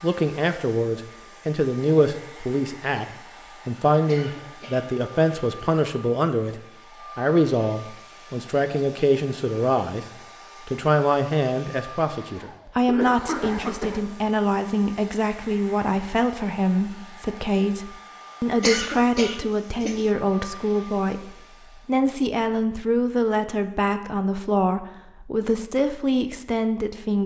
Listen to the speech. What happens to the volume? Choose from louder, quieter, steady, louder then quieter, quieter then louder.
steady.